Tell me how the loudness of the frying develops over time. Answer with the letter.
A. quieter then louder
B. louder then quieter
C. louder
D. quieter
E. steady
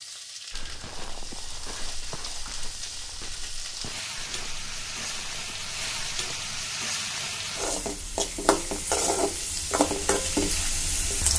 C.